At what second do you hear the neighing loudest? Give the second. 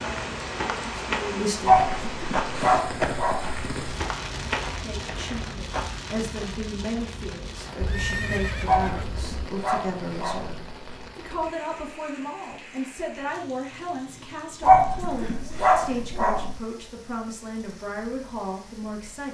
8 s.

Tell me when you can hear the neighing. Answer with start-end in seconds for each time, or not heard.
7.8-9.5.